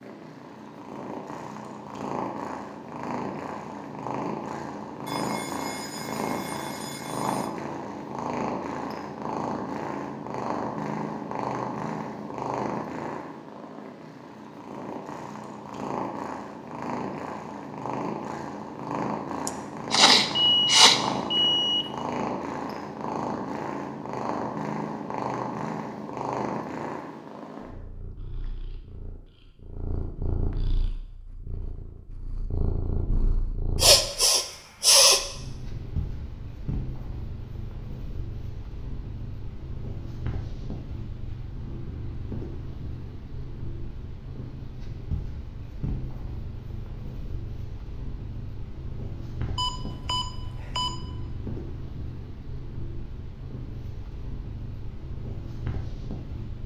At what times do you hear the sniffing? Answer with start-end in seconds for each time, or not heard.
19.4-21.0, 33.8-35.2.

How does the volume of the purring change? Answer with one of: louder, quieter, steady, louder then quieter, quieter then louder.
quieter.